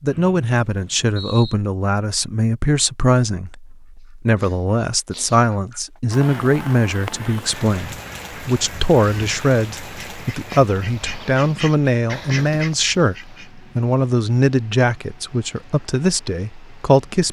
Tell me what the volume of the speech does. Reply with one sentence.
The volume of the speech stays about the same.